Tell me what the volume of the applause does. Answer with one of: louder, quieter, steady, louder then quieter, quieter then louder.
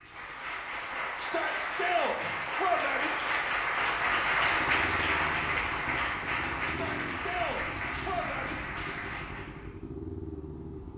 louder then quieter.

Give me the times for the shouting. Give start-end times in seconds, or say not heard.
1.1-3.1, 6.7-8.6.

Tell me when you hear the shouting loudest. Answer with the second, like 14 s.
3 s.